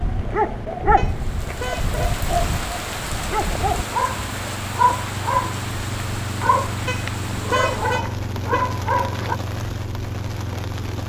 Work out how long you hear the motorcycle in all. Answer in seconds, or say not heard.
11 s.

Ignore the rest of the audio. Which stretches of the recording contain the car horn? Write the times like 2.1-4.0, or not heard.
0.9-1.9, 6.8-8.8.